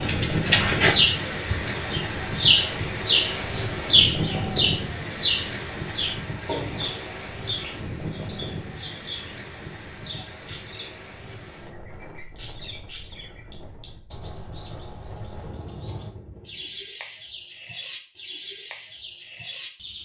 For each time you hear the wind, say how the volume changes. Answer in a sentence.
You can hear the wind from 0.0 to 16.9 s, getting quieter.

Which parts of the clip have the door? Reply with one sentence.
You can't hear the door here.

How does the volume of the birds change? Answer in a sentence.
The loudness of the birds goes down.